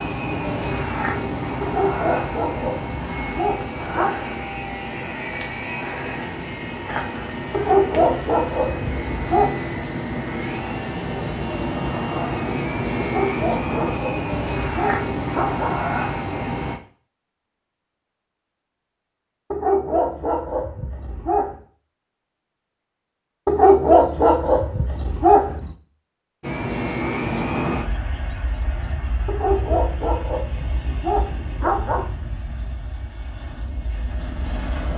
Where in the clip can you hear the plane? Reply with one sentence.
The plane can be heard from 0.0 to 16.8 s and from 26.4 to 34.9 s.